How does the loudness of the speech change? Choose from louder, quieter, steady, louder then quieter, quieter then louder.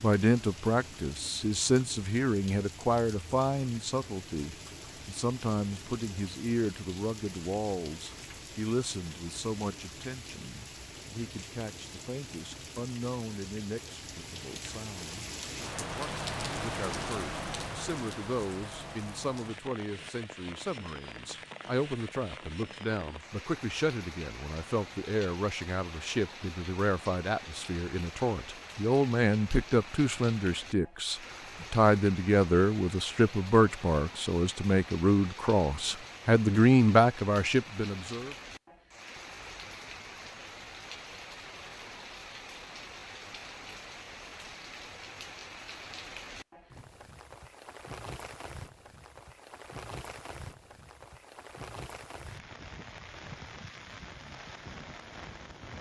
quieter then louder.